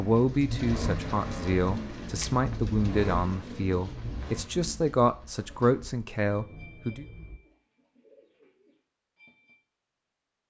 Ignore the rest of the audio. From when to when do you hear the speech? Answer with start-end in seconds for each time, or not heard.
0.0-7.0.